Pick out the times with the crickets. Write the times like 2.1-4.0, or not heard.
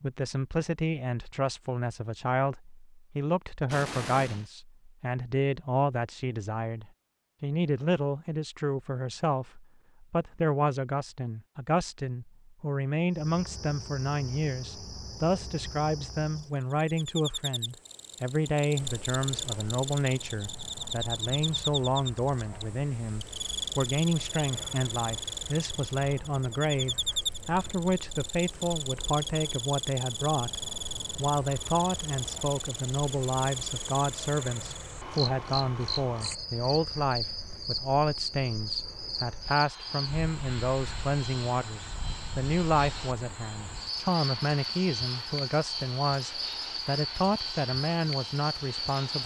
13.1-49.2.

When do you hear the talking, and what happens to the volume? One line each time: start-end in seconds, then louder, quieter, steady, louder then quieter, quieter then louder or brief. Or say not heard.
0.0-49.2 steady.